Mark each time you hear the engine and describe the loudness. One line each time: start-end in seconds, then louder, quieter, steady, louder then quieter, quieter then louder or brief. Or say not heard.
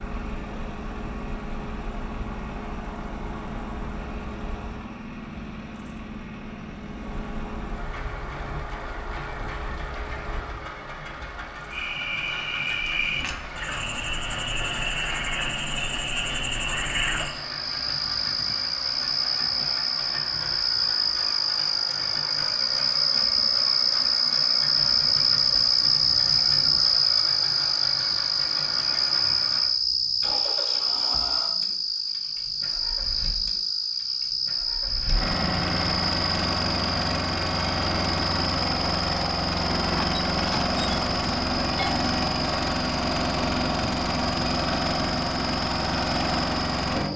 0.0-47.1 louder.